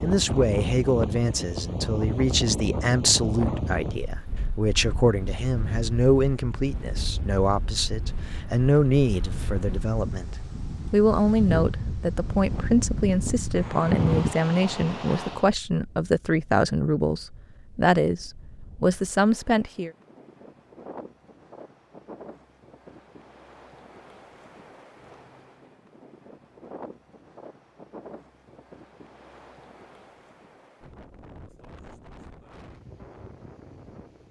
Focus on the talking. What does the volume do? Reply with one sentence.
The loudness of the talking stays about the same.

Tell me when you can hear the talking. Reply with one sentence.
The talking can be heard from 0.0 to 19.9 s.